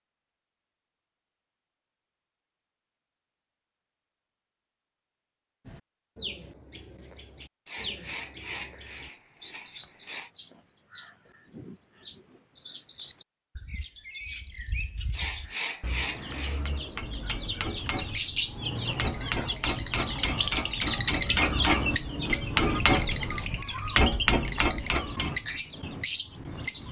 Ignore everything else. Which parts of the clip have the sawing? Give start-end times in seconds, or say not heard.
7.7-10.3, 15.1-16.6.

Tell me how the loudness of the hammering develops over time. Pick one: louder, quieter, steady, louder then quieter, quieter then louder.
louder.